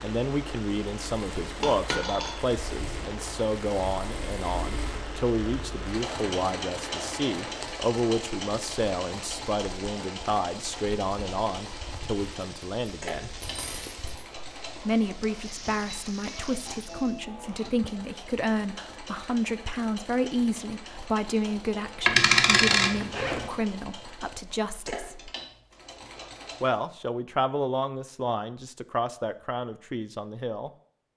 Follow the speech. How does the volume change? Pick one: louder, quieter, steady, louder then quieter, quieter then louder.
steady.